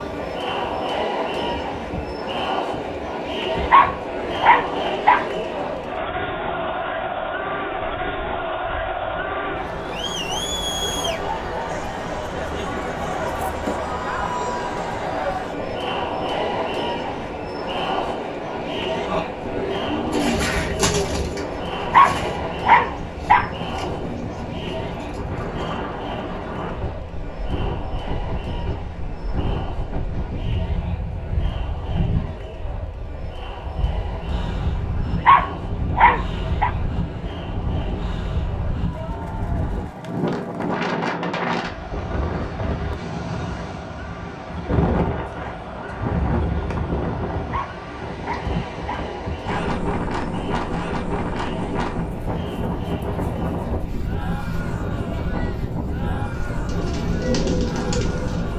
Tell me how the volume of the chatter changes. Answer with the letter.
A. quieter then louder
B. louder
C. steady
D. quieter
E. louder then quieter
D.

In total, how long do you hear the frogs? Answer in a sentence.
You can't hear the frogs here.